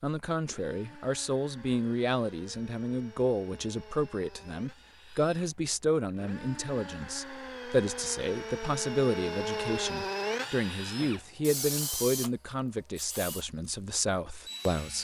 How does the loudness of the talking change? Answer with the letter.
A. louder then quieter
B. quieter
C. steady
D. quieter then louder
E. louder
C.